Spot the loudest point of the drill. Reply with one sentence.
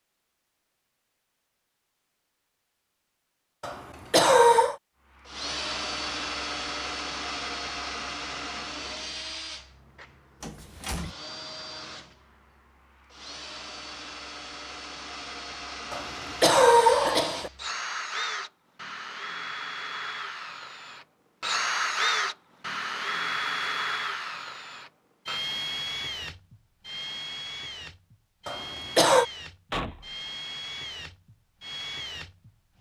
The loudest moment of the drill is at 22 seconds.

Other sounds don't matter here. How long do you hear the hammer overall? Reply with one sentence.
The hammer can't be heard in this clip.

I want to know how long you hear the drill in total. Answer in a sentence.
The drill can be heard for 27 seconds in total.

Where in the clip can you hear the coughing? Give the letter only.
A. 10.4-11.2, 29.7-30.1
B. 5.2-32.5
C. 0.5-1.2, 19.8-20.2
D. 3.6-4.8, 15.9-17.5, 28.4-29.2
D.